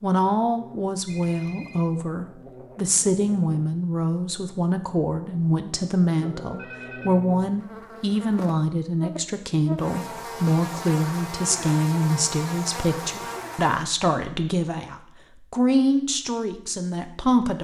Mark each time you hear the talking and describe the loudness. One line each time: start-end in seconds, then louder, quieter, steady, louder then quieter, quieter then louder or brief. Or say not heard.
0.0-17.6 steady.